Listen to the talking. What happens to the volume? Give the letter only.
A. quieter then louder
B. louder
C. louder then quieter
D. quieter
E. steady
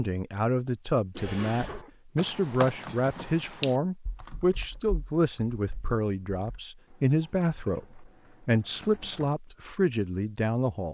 E.